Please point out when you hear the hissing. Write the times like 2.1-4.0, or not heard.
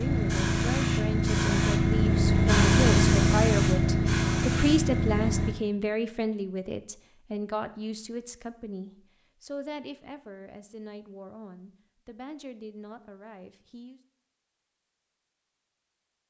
0.0-5.5.